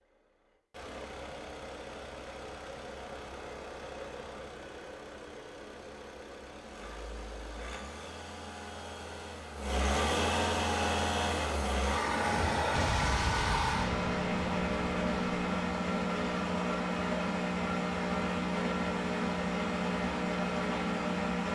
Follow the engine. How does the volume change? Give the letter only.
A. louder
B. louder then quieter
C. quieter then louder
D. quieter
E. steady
A.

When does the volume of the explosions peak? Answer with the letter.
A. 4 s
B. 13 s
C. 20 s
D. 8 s
B.